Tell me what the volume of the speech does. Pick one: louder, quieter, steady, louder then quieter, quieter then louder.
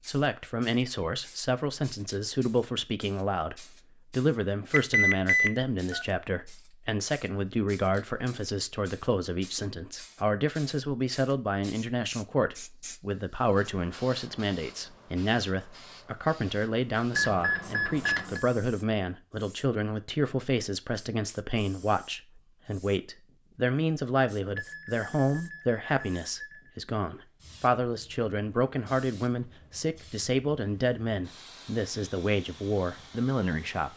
steady.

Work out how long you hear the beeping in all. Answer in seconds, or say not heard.
5 s.